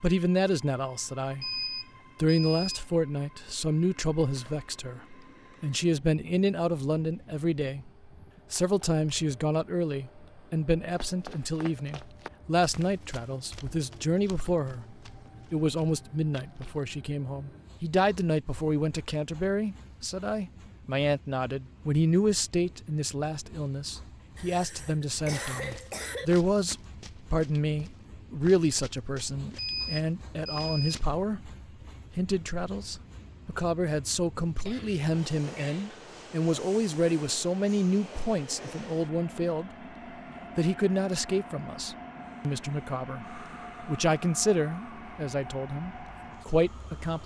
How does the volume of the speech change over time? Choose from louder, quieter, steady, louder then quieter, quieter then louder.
steady.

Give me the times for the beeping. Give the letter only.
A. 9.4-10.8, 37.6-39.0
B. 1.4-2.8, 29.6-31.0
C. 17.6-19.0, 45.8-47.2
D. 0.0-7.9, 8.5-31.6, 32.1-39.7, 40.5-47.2
B.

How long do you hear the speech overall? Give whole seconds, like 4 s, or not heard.
45 s.